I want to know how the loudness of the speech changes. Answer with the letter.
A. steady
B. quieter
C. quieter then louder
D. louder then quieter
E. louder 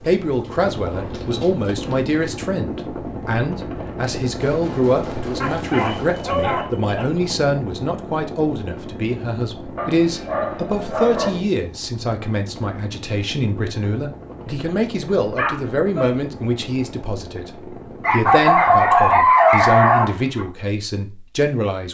A.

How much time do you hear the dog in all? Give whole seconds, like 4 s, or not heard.
8 s.